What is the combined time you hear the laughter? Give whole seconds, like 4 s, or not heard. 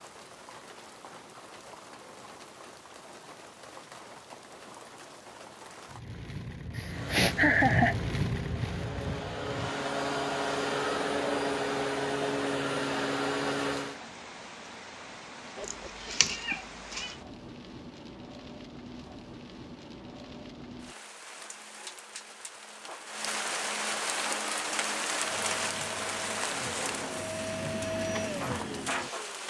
2 s.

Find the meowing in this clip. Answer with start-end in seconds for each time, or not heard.
15.6-17.1.